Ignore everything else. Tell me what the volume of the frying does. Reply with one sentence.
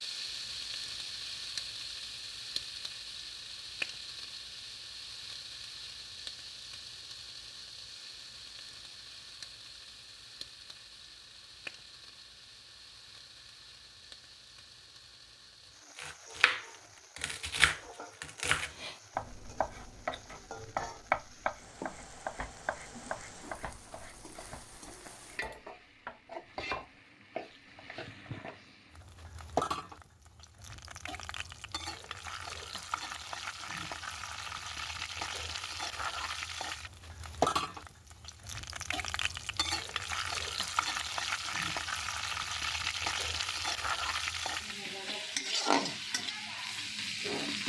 The loudness of the frying goes down, then up.